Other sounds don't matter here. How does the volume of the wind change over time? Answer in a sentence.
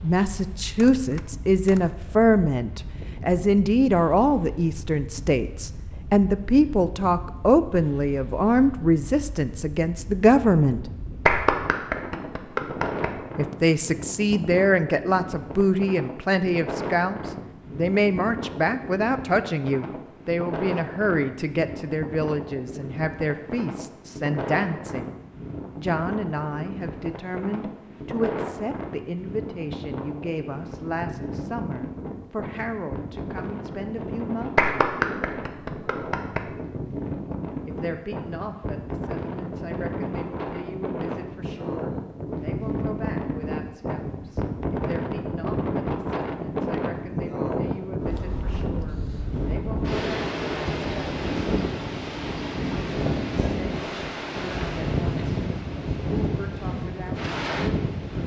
The volume of the wind goes up.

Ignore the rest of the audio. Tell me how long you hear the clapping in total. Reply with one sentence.
You can hear the clapping for 4 seconds altogether.